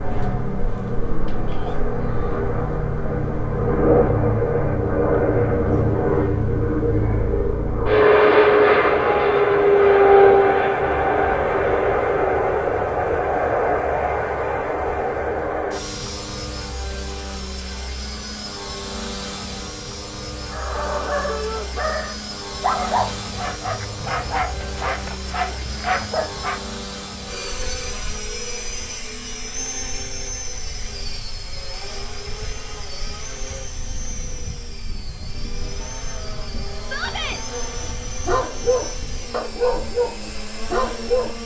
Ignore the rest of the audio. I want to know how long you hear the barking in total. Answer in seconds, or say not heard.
10 s.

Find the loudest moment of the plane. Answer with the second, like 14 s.
10 s.